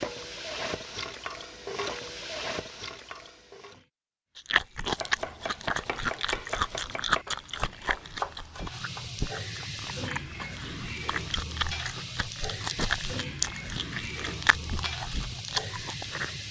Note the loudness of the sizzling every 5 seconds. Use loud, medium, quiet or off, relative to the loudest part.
loud, medium, loud, loud.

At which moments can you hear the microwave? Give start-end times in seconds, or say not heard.
not heard.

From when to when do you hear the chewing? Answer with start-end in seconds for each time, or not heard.
4.3-16.3.